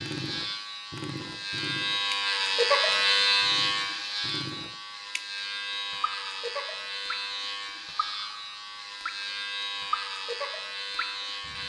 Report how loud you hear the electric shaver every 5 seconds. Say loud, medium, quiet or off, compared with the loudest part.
loud, medium, medium.